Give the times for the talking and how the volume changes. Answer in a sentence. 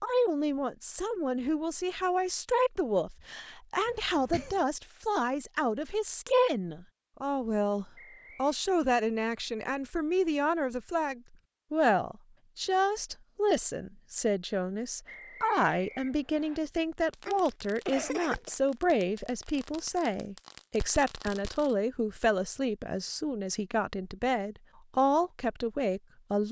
You can hear the talking from 0.0 to 26.4 s, at a steady volume.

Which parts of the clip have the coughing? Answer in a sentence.
The coughing can be heard from 3.9 to 4.7 s and from 17.2 to 18.6 s.